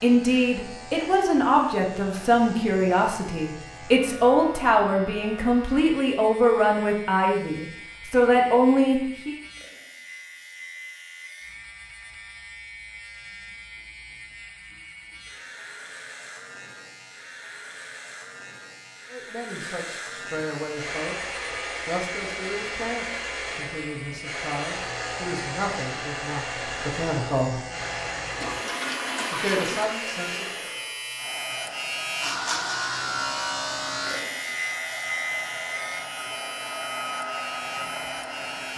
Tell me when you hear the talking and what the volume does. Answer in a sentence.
The talking can be heard from 0.0 to 9.3 s, at a steady volume; from 19.1 to 27.6 s, at a steady volume; and briefly from 29.3 to 30.7 s.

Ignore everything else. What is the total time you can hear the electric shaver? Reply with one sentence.
You can hear the electric shaver for 39 seconds altogether.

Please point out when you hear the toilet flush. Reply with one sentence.
The toilet flush can be heard from 28.4 to 30.0 s.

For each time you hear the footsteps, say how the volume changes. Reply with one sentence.
You can't hear the footsteps here.